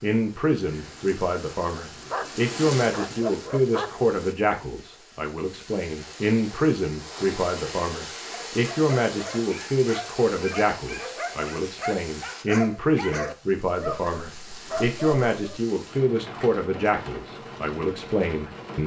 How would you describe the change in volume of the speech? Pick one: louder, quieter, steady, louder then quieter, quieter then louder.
steady.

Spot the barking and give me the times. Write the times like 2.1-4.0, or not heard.
1.9-4.0, 8.3-15.6.